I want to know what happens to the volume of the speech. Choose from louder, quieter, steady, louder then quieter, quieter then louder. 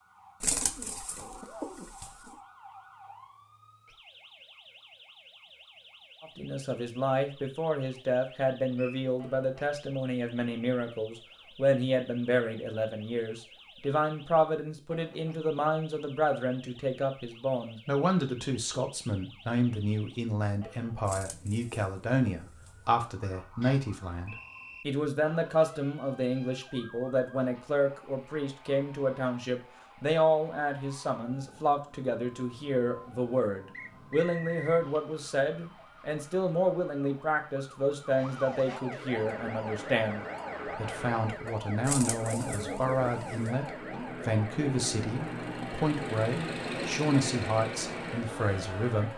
steady.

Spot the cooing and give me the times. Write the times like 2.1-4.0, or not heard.
0.4-2.3, 21.1-22.8, 41.8-43.5.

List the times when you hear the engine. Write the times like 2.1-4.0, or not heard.
39.0-49.1.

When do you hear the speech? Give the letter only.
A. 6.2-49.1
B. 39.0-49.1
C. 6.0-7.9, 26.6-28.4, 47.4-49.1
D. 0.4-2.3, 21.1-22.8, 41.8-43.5
A.